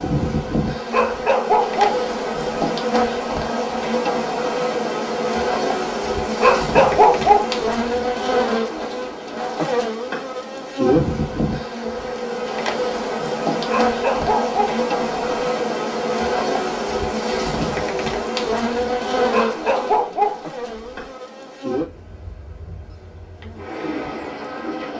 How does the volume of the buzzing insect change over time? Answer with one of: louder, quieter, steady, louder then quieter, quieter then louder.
quieter.